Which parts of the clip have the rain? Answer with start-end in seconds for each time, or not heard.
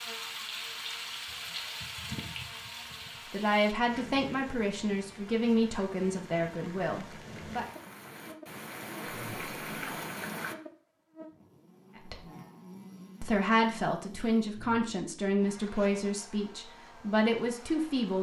0.0-10.6.